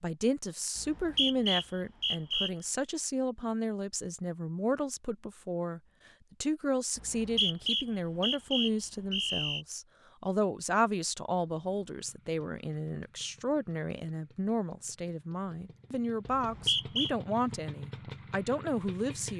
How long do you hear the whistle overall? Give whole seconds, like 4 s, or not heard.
5 s.